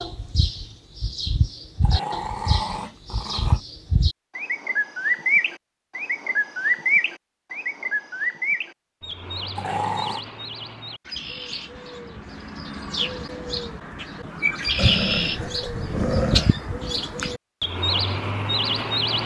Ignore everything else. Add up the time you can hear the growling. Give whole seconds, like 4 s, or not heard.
4 s.